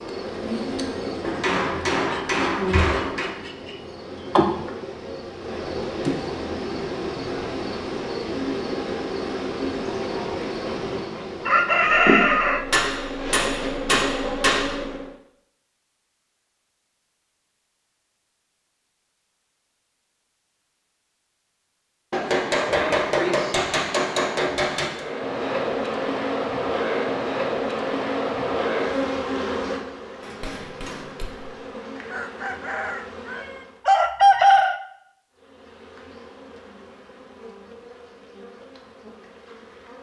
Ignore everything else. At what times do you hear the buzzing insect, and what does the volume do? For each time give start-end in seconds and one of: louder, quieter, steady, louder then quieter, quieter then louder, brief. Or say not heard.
0.0-15.2 steady
24.9-33.9 quieter
35.3-39.9 steady.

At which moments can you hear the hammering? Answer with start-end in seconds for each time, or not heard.
1.2-3.3, 12.7-14.8, 22.1-25.1, 30.2-31.6.